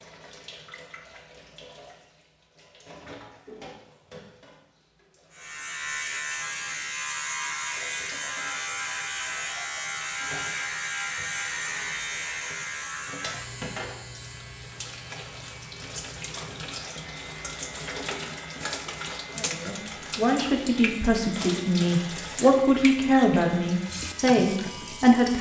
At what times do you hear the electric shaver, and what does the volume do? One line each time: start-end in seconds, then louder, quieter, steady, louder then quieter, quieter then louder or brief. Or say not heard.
5.3-25.3 quieter.